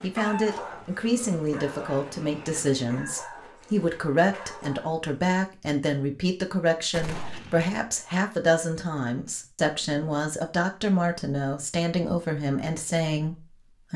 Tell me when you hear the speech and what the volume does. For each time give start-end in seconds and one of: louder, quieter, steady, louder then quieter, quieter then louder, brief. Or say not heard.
0.0-13.9 steady.